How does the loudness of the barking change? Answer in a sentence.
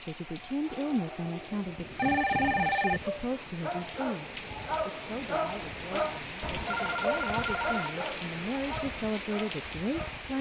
The volume of the barking goes up, then down.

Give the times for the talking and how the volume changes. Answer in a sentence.
The talking can be heard from 0.0 to 10.3 s, getting quieter then louder.